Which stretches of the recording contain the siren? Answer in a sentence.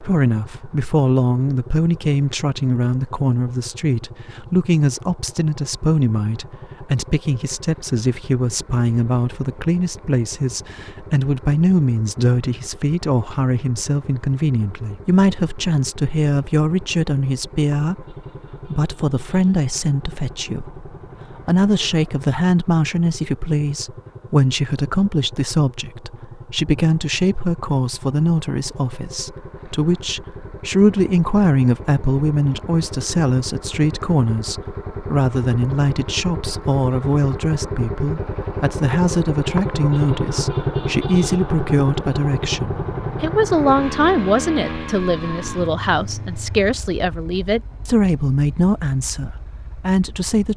The siren can't be heard in this clip.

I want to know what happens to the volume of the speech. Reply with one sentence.
The loudness of the speech stays about the same.